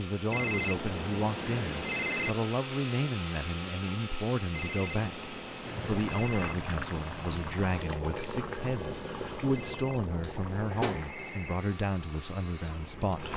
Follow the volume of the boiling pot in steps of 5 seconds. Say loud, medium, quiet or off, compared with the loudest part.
off, loud, loud.